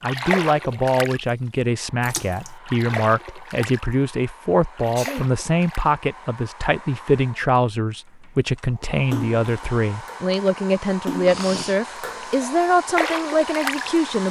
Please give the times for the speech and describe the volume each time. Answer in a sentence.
The speech can be heard from 0.0 to 14.2 s, at a steady volume.